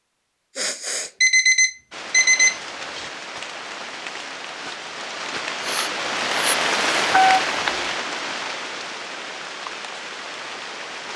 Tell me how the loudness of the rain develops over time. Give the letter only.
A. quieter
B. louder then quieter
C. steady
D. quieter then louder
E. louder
B.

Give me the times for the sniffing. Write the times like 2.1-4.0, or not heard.
0.6-1.1, 5.6-6.5.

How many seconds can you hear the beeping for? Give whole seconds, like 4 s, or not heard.
3 s.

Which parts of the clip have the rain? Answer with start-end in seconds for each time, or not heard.
1.9-11.1.